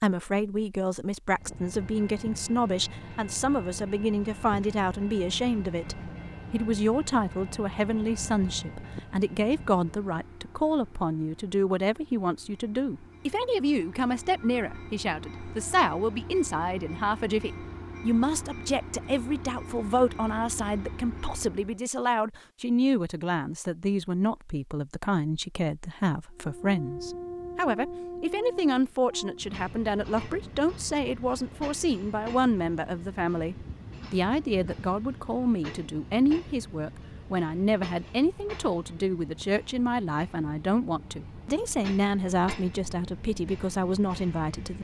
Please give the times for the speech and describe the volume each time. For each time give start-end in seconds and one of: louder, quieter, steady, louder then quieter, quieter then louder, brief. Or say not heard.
0.0-44.7 steady.